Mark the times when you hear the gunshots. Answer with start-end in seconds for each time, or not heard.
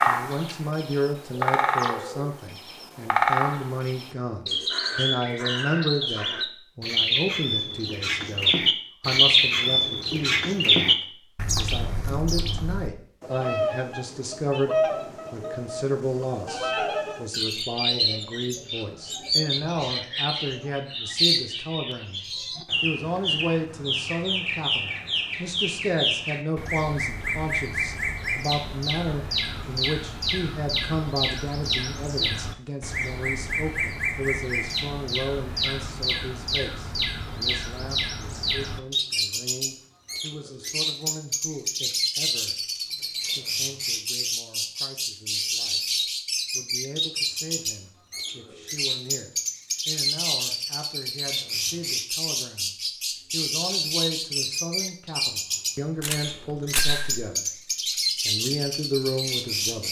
56.0-57.3.